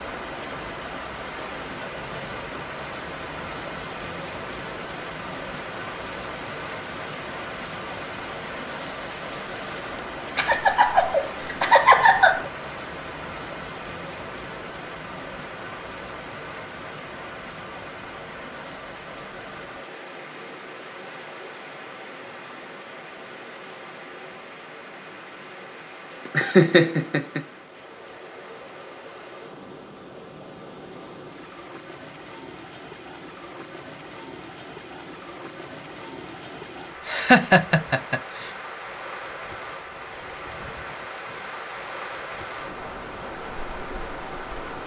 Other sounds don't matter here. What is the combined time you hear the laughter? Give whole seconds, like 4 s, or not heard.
5 s.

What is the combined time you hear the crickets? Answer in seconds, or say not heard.
not heard.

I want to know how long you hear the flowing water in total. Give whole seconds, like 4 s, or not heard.
45 s.